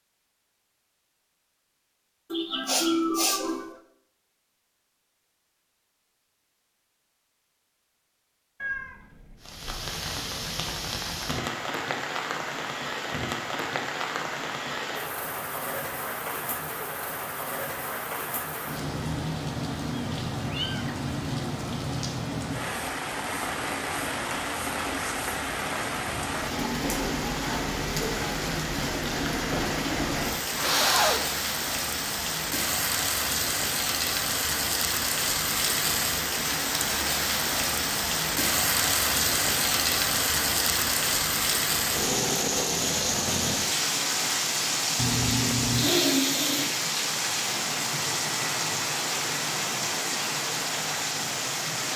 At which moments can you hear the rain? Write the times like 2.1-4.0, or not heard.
9.4-51.9.